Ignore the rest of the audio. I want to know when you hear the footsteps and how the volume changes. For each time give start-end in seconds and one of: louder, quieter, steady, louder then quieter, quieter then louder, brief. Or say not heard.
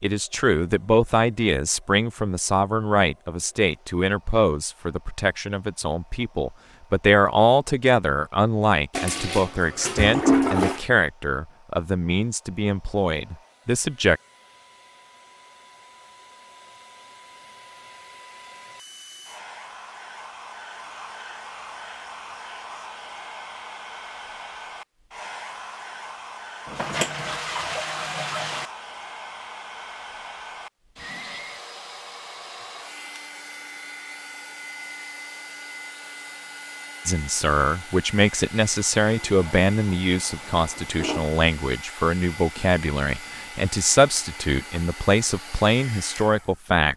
not heard.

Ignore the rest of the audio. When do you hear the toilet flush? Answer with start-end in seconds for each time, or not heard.
8.9-10.8, 26.6-28.6, 39.2-41.3.